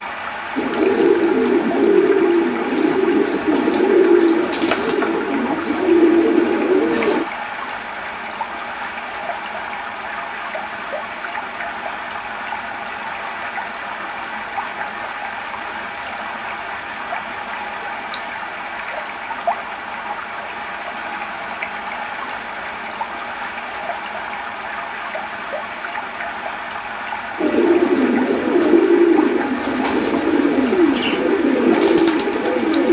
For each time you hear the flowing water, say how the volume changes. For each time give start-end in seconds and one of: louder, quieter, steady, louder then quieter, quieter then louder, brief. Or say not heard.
0.0-32.8 steady.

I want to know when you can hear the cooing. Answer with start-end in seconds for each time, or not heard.
0.6-7.2, 27.4-32.8.